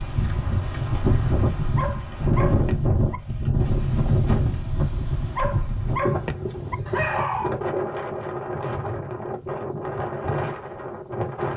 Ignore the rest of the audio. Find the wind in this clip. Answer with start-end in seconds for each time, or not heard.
0.0-11.5.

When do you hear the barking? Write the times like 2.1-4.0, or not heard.
0.0-7.5.